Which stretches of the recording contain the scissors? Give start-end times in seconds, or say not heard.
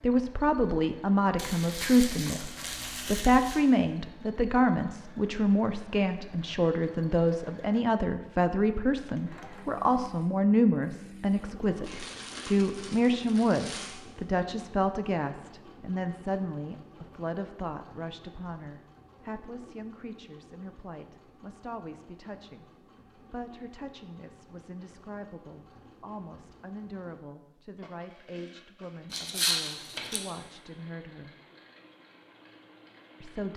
not heard.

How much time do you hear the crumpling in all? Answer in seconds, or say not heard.
6 s.